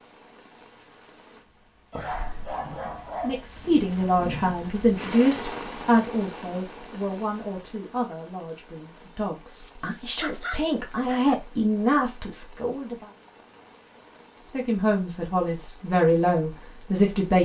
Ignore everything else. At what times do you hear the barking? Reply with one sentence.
The barking can be heard from 1.9 to 3.5 s and from 9.6 to 11.3 s.